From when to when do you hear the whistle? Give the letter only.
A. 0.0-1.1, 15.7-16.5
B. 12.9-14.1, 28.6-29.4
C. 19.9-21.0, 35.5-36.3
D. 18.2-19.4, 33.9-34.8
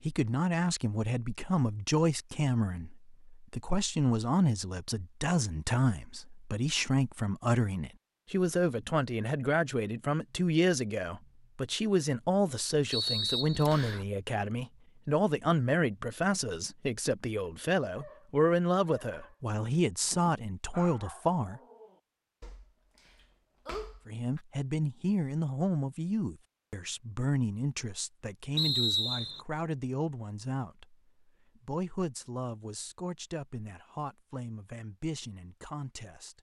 B.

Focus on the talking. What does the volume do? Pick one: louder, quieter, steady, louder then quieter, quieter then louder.
quieter.